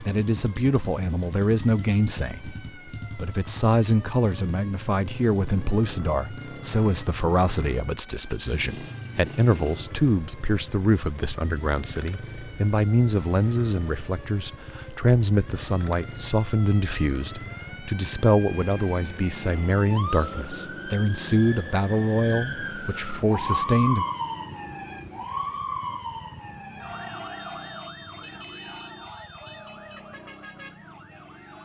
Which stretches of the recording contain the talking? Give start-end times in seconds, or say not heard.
0.0-24.1.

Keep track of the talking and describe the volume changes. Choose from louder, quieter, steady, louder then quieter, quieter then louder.
steady.